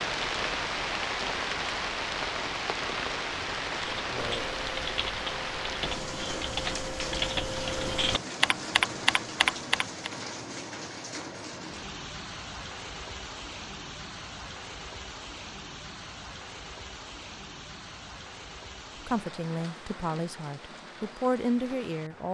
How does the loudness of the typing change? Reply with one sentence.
The loudness of the typing goes up.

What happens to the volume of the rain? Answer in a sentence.
The loudness of the rain goes down.